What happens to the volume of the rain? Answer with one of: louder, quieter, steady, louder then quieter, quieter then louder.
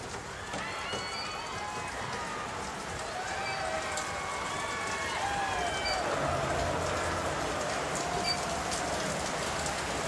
louder.